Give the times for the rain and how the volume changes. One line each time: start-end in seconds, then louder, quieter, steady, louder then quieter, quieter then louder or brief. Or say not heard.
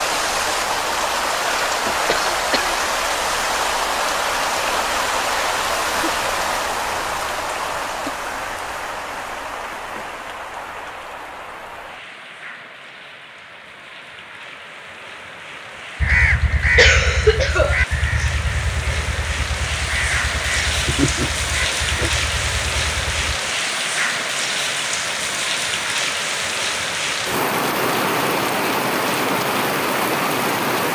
0.0-30.9 quieter then louder.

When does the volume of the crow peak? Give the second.
16 s.